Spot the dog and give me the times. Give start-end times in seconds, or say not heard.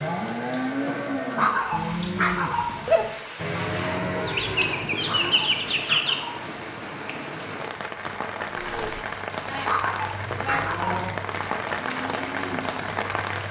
1.4-3.0, 5.0-6.4, 9.7-11.2.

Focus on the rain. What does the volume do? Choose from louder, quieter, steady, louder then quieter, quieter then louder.
louder.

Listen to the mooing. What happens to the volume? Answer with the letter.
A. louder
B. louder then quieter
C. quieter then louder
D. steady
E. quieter
E.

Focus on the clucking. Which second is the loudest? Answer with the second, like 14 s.
6 s.